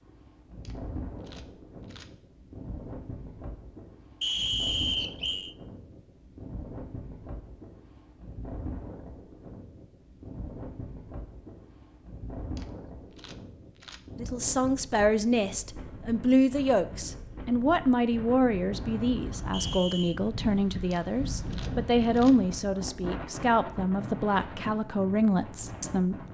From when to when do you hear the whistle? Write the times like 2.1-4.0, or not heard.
4.2-5.5, 19.5-20.2.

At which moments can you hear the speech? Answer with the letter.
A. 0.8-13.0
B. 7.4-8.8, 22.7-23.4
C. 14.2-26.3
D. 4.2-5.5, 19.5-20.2
C.